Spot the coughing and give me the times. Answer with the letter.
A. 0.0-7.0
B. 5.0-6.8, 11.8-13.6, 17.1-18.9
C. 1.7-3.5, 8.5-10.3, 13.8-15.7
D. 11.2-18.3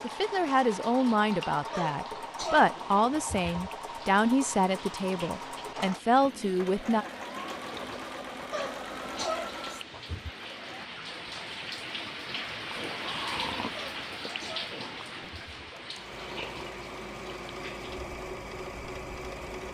C.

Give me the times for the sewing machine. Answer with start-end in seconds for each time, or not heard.
0.0-10.9, 15.2-19.6.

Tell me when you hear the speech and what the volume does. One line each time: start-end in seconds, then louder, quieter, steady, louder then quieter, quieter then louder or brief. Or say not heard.
0.0-7.0 steady.